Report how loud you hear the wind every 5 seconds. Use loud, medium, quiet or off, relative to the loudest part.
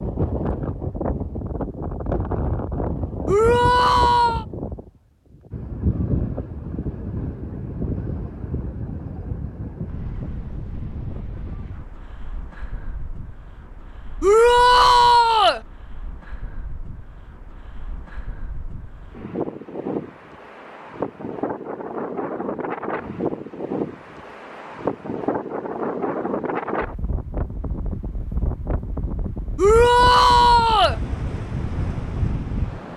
loud, loud, medium, medium, loud, loud, loud.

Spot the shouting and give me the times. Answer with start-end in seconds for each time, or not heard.
3.2-4.5, 14.2-15.6, 29.6-30.9.